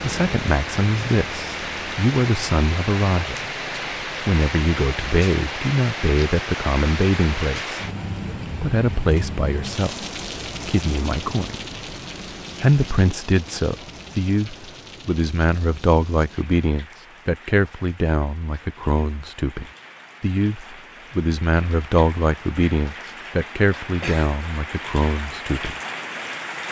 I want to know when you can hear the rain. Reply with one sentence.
You can hear the rain from 0.0 to 26.6 s.